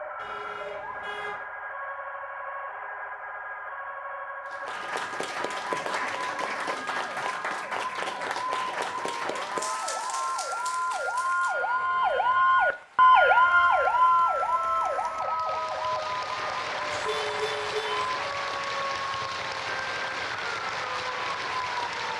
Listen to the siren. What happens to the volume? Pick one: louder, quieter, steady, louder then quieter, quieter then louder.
louder then quieter.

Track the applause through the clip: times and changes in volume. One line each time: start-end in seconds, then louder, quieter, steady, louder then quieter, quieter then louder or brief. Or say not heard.
4.5-22.1 quieter then louder.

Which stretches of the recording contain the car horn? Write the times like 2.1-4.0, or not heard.
0.1-1.4, 16.9-18.1.